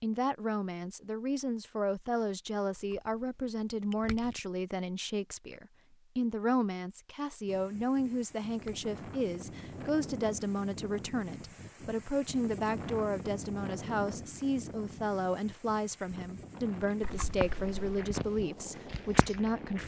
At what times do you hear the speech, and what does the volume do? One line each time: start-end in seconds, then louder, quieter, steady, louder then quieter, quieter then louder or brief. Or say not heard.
0.0-19.8 steady.